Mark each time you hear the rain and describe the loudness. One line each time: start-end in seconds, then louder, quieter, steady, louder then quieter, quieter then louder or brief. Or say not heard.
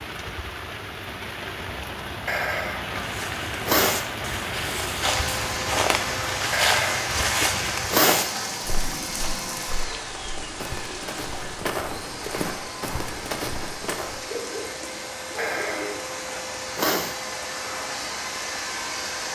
0.0-19.3 quieter.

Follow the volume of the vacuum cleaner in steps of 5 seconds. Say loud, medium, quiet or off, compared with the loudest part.
off, loud, medium, loud.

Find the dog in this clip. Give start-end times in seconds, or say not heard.
14.2-16.1.